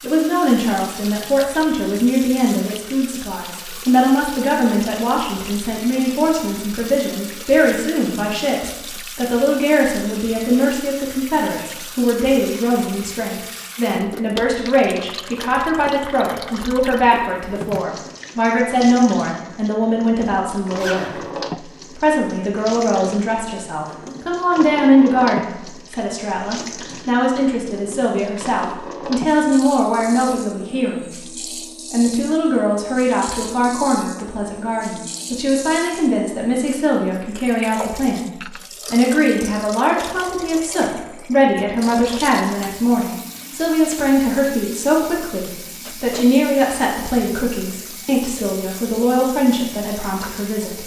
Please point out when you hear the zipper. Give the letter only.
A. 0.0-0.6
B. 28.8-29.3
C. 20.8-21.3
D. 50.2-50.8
C.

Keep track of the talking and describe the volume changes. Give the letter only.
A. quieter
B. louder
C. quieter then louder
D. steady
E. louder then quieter
D.